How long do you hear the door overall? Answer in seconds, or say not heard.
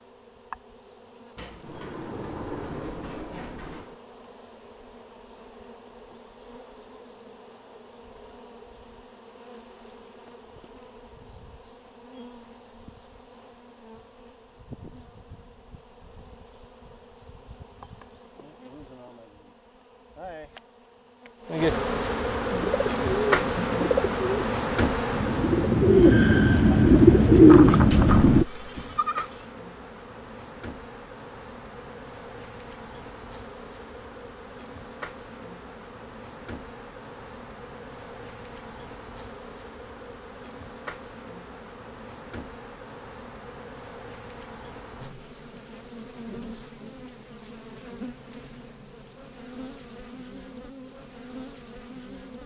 4 s.